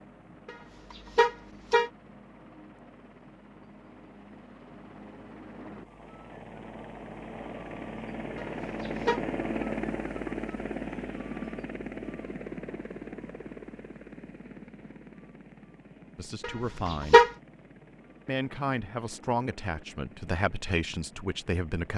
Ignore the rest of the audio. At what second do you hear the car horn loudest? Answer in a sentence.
The loudest moment of the car horn is at 17 seconds.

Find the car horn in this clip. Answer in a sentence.
The car horn can be heard from 0.5 to 1.9 s, from 8.3 to 9.2 s and from 16.4 to 17.3 s.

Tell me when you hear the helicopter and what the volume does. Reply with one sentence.
You can hear the helicopter from 0.0 to 21.9 s, getting louder then quieter.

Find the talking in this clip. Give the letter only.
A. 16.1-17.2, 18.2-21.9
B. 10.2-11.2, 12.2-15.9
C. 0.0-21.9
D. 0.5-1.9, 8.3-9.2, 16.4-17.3
A.